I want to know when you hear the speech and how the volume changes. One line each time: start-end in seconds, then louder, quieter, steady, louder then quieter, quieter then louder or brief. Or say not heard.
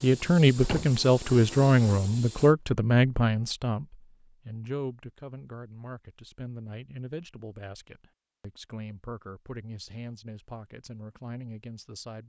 0.0-12.2 quieter.